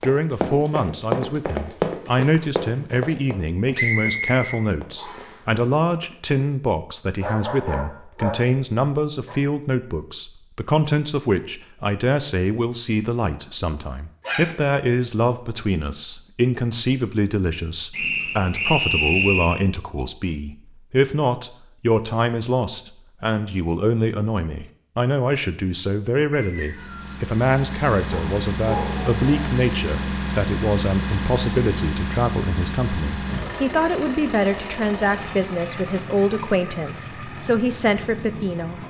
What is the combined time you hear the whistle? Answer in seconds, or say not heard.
4 s.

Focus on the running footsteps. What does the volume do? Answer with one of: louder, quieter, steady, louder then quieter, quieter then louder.
quieter.